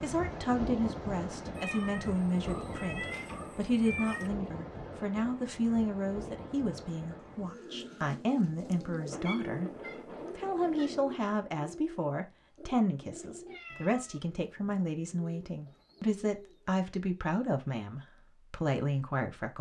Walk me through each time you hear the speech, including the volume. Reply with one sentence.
You can hear the speech from 0.0 to 19.5 s, at a steady volume.